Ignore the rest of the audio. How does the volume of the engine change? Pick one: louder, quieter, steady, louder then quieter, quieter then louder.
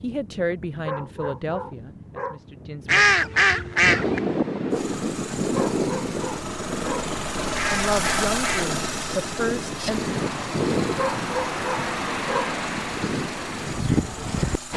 louder then quieter.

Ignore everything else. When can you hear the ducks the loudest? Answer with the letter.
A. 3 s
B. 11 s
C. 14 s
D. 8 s
A.